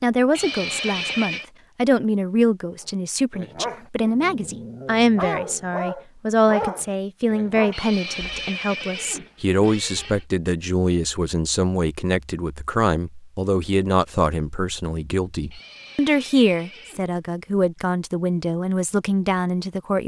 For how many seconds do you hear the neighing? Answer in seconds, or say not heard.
5 s.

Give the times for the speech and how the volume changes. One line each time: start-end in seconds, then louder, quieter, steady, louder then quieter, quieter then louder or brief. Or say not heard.
0.0-20.0 steady.